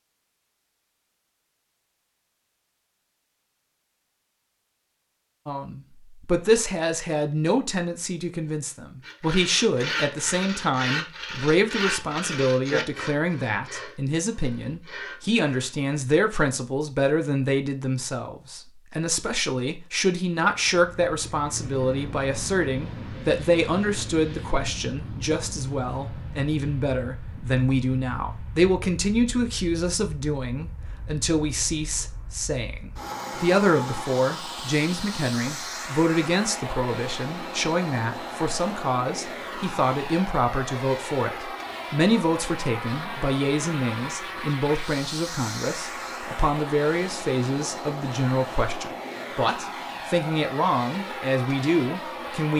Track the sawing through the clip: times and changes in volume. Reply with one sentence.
The sawing can be heard from 9.1 to 15.8 s, getting quieter.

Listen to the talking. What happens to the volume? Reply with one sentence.
The loudness of the talking stays about the same.